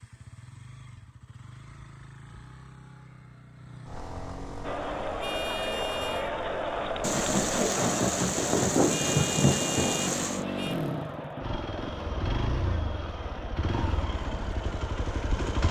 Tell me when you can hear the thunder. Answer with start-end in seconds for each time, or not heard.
7.0-10.4.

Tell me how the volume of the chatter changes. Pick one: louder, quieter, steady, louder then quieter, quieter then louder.
quieter.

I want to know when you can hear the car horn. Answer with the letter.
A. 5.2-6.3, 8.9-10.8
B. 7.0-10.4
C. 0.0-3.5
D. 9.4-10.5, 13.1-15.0
A.